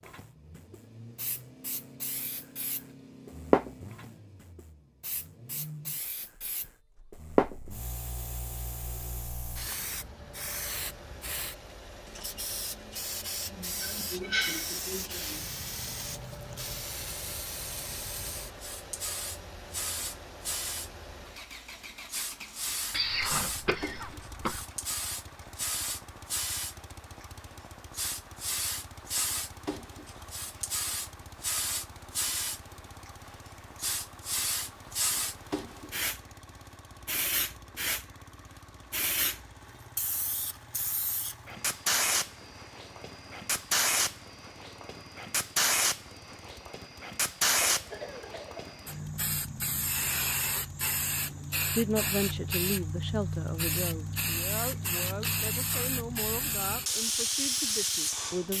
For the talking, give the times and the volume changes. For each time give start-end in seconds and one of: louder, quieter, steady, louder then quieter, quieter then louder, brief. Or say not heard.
51.8-58.5 quieter.